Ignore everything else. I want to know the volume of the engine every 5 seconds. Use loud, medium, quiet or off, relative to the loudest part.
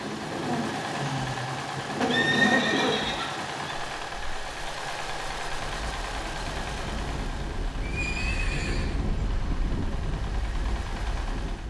loud, loud, medium.